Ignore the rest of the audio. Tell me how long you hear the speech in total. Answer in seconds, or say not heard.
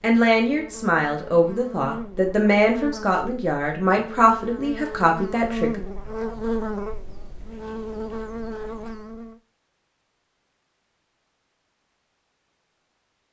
6 s.